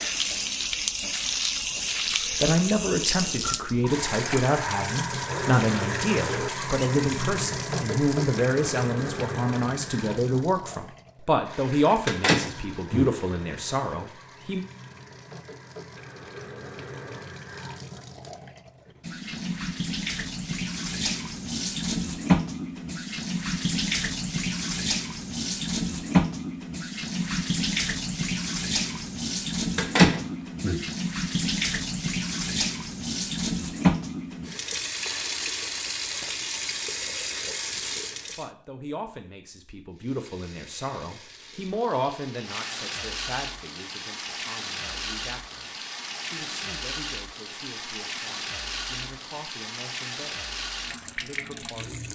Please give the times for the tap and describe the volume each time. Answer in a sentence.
You can hear the tap from 0.0 to 38.5 s, getting quieter then louder; and from 39.9 to 52.0 s, getting louder.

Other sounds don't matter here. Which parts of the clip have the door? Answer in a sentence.
You can hear the door from 12.1 to 13.1 s and from 29.8 to 30.8 s.